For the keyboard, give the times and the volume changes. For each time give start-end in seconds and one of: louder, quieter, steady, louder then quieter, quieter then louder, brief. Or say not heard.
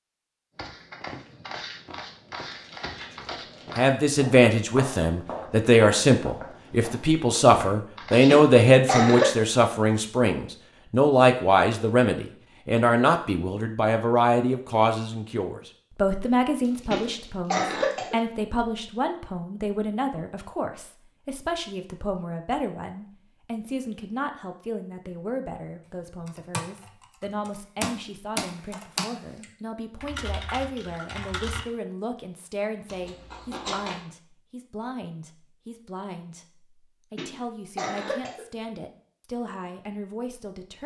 26.2-31.6 louder then quieter.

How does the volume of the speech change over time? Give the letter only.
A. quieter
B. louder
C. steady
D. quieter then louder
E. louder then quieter
A.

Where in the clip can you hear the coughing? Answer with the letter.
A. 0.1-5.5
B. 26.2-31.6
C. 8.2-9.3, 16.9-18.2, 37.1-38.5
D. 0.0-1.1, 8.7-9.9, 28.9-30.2
C.